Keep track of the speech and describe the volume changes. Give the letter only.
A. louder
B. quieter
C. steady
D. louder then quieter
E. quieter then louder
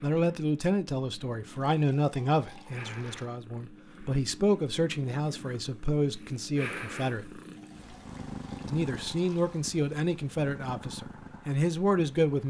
C.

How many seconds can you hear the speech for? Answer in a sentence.
The speech can be heard for 11 seconds in total.